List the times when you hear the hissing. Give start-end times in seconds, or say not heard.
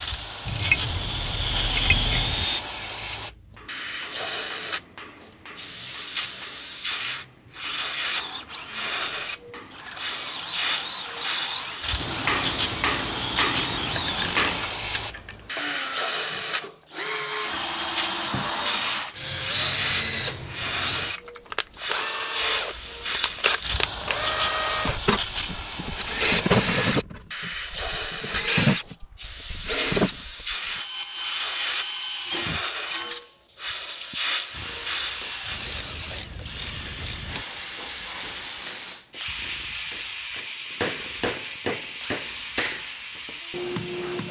0.0-44.2.